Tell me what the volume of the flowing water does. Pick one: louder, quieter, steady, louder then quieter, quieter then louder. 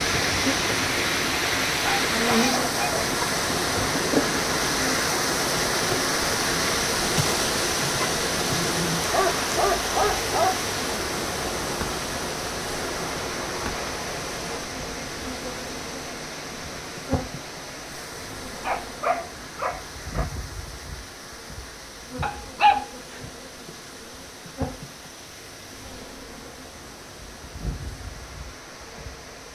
quieter.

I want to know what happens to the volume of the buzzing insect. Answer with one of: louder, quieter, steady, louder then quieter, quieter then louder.
quieter.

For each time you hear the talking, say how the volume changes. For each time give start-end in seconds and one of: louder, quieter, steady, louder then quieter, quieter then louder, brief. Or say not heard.
not heard.